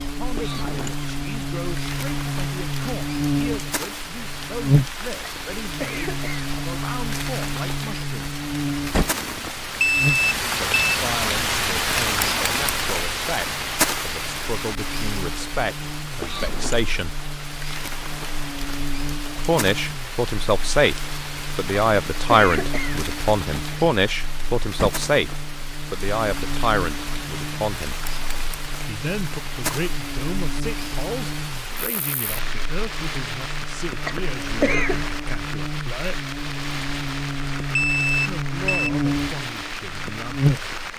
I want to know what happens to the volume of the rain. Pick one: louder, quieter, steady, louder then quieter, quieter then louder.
louder then quieter.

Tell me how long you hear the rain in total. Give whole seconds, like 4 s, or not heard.
41 s.